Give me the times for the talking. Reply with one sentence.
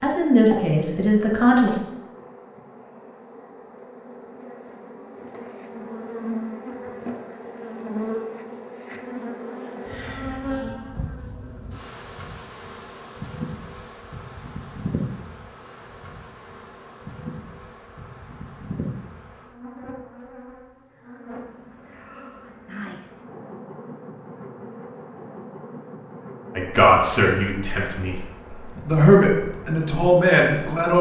You can hear the talking from 0.0 to 1.8 s, from 26.6 to 28.2 s and from 28.9 to 30.9 s.